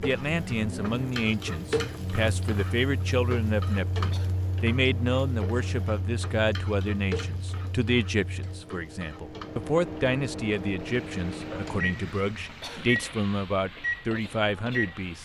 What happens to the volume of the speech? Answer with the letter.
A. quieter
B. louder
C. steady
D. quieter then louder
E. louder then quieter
C.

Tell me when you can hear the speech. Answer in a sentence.
You can hear the speech from 0.0 to 15.2 s.